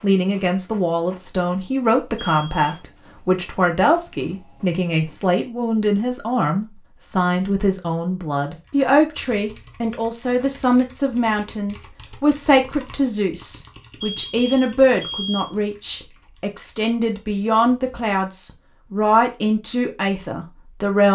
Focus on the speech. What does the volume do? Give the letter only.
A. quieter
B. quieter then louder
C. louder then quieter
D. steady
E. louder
D.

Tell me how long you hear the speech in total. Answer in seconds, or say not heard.
21 s.